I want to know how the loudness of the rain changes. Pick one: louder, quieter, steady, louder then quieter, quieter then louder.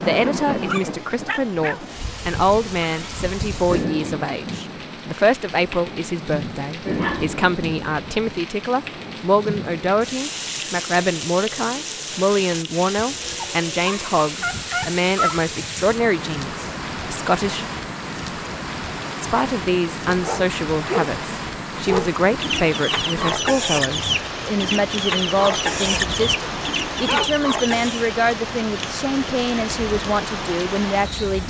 steady.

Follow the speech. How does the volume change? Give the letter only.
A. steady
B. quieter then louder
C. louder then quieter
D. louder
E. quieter
A.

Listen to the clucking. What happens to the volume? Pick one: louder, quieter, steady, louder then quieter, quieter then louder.
steady.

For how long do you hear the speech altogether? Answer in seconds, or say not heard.
30 s.